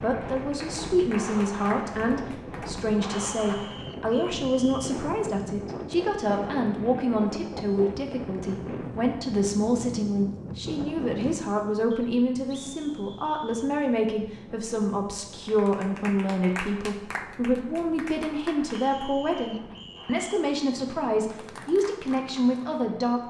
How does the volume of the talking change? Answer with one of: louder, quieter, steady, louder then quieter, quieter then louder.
steady.